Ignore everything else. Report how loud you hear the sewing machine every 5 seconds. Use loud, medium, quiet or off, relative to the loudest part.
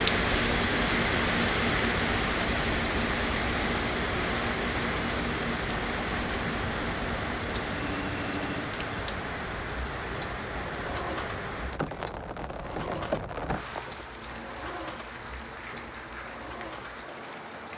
loud, loud, medium, quiet.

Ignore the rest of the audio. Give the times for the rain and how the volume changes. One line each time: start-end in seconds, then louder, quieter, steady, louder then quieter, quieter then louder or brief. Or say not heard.
0.0-17.7 quieter.